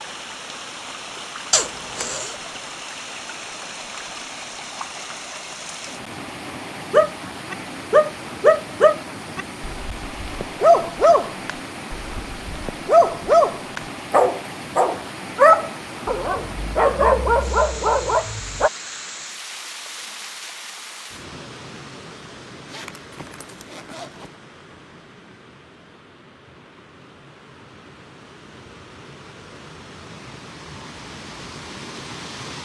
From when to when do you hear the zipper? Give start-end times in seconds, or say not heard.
1.5-2.4, 22.6-24.4.